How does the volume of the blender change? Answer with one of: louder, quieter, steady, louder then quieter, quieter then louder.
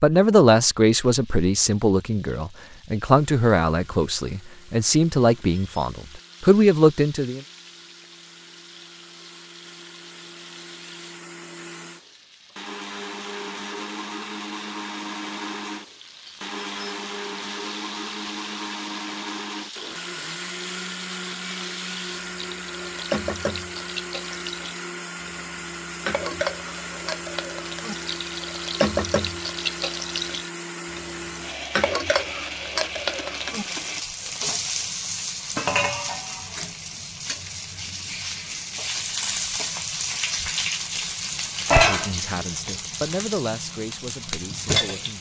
louder.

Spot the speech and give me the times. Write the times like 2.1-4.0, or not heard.
0.0-7.4, 41.7-45.1.